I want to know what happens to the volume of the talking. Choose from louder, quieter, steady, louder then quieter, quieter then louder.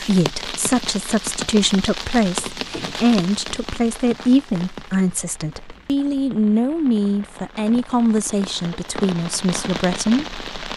steady.